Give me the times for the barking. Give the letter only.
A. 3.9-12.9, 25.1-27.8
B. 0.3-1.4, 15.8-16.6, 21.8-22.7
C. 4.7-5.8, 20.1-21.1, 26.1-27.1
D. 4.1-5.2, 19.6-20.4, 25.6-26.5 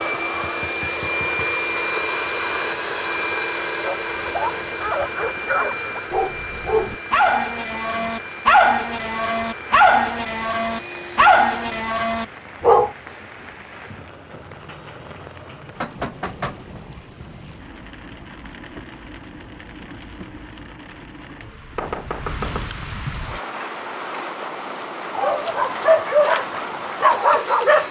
A.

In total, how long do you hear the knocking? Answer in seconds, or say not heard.
3 s.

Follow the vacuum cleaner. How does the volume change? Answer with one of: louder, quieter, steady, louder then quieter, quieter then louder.
quieter.